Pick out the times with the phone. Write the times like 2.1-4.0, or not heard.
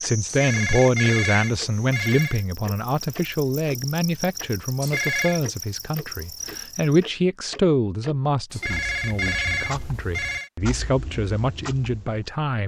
0.2-2.5, 4.8-5.4, 8.5-10.5.